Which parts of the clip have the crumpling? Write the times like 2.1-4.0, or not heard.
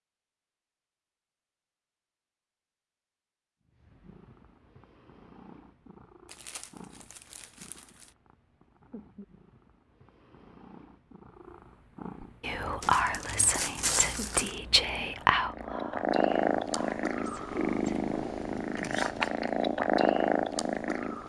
6.2-8.1, 12.8-14.6.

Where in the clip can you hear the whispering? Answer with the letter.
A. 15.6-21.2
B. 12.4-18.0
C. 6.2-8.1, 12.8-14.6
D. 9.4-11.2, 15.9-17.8
B.